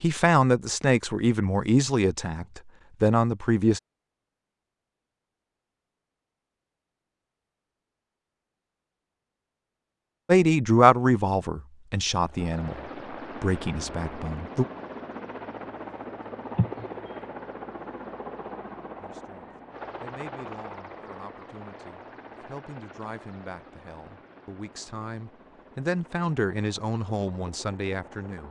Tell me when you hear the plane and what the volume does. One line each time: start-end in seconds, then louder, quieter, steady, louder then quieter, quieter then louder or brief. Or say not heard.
12.2-28.4 quieter.